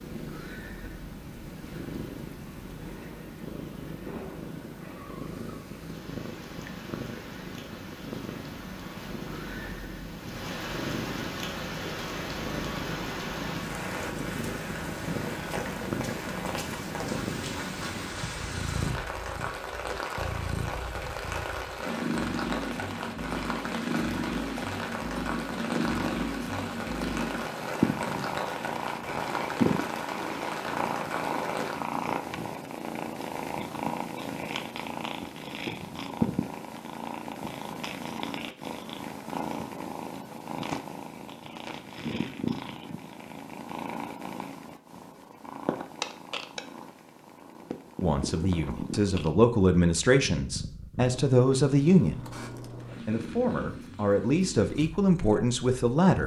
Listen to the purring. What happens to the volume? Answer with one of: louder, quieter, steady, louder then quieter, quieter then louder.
louder then quieter.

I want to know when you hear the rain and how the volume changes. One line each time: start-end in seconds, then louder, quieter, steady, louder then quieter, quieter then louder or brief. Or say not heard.
0.0-31.9 louder.